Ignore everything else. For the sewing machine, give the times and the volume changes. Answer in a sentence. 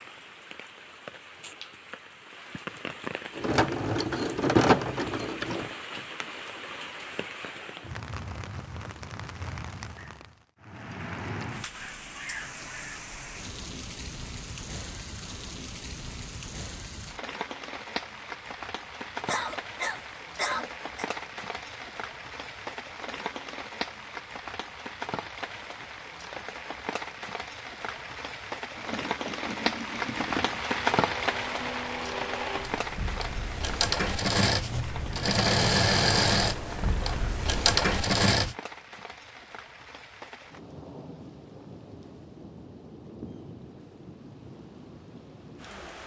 You can hear the sewing machine briefly from 3.4 to 5.7 s; and from 28.8 to 38.5 s, getting louder.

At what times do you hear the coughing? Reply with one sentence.
You can hear the coughing from 19.2 to 21.1 s.